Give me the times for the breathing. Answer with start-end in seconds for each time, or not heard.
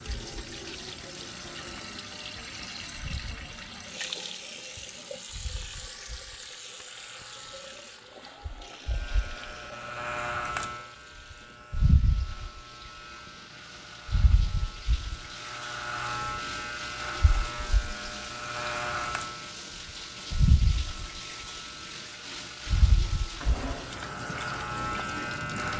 not heard.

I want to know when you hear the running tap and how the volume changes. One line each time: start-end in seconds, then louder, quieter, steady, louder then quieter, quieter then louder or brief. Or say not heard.
0.0-25.7 quieter then louder.